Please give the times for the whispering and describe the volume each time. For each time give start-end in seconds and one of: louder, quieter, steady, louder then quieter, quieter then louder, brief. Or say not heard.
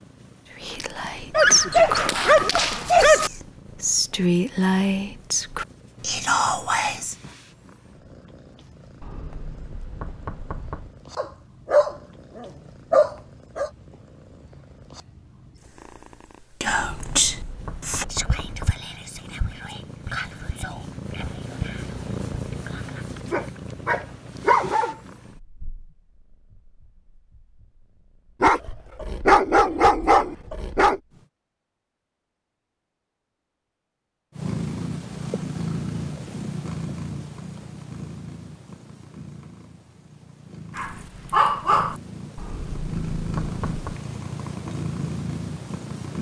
0.6-7.2 quieter then louder
16.6-23.1 quieter.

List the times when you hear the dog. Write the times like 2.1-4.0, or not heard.
1.3-3.3, 11.2-13.7, 23.2-24.9, 28.4-31.0, 40.8-42.0.